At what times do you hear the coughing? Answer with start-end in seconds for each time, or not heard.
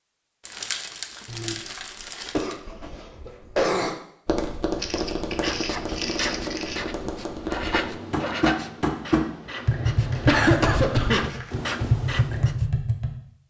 1.2-4.0, 10.2-11.2.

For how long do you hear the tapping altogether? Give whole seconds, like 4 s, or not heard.
9 s.